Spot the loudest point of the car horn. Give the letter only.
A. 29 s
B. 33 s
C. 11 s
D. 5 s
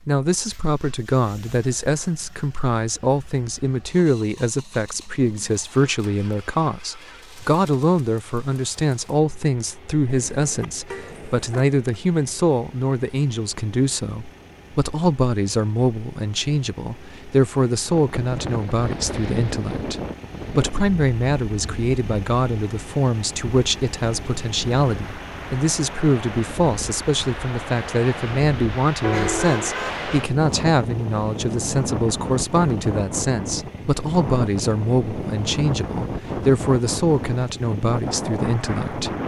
A.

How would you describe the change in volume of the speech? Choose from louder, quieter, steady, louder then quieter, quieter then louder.
steady.